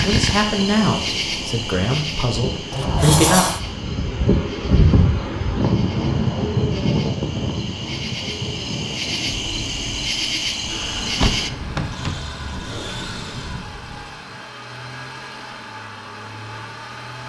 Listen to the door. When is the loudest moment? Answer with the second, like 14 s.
3 s.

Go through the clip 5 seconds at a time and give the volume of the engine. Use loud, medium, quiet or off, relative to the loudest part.
off, off, loud, loud.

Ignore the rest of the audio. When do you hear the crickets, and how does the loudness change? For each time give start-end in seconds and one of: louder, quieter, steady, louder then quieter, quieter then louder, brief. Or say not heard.
0.0-11.5 quieter then louder.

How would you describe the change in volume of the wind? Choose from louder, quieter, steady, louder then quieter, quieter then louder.
louder then quieter.